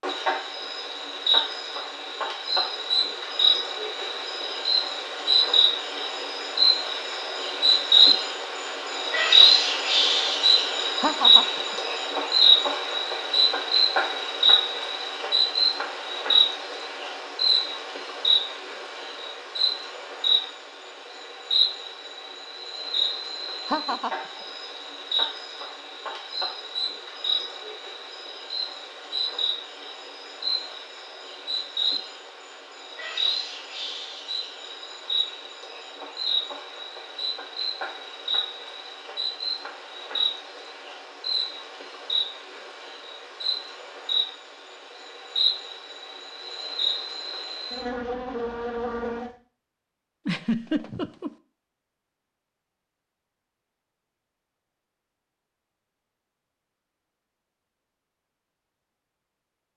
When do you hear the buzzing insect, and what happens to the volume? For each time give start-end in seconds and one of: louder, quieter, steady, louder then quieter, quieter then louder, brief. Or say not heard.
0.0-49.3 quieter.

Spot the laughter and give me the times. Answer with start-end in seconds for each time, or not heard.
11.0-11.8, 23.6-24.4, 50.2-51.3.